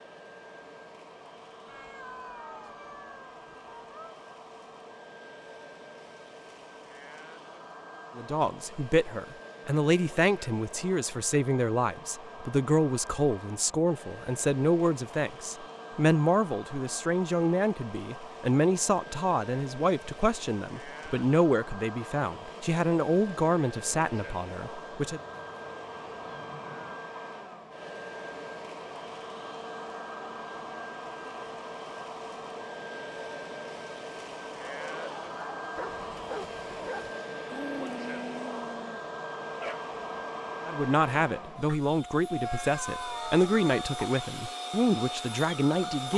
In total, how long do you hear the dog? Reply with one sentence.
The dog can be heard for 5 seconds in total.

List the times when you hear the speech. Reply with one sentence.
The speech can be heard from 8.2 to 25.2 s and from 40.6 to 46.1 s.